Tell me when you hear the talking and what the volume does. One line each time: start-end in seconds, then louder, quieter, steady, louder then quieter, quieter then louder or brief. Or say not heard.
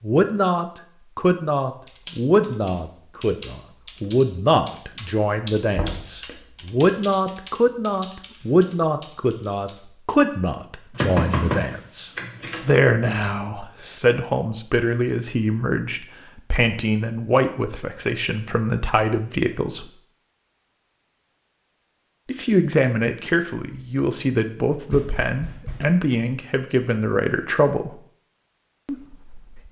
0.0-19.9 steady
22.2-27.9 steady
28.9-29.6 brief.